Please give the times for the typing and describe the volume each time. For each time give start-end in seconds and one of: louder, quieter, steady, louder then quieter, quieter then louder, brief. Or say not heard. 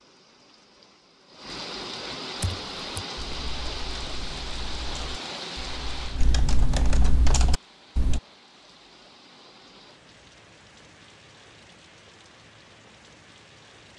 2.4-8.2 louder.